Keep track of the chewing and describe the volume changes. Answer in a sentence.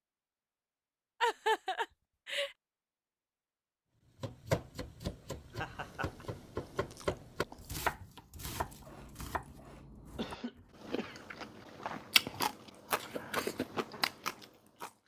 The loudness of the chewing goes up.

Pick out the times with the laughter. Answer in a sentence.
The laughter can be heard from 1.2 to 2.5 s, from 5.5 to 6.2 s and from 10.2 to 11.2 s.